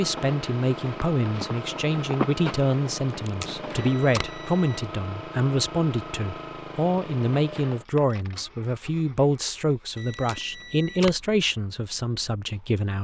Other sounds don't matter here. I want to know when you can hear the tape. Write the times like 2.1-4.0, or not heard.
3.1-4.3, 9.9-11.2.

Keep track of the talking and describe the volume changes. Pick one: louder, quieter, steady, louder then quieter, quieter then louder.
steady.